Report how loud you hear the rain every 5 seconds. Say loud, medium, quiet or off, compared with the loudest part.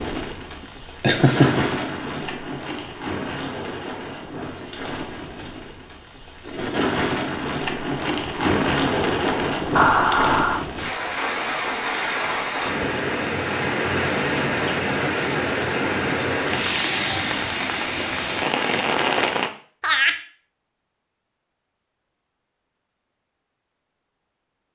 medium, loud, loud, loud, off.